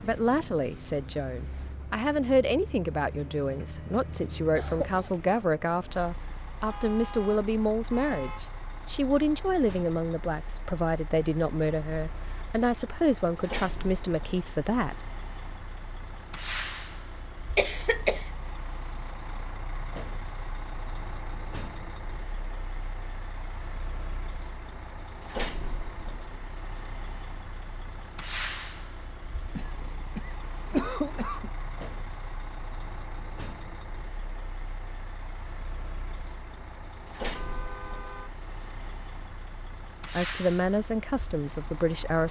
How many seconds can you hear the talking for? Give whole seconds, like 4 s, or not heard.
17 s.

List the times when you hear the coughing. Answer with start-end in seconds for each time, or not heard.
4.5-5.0, 17.6-18.3, 29.6-31.5.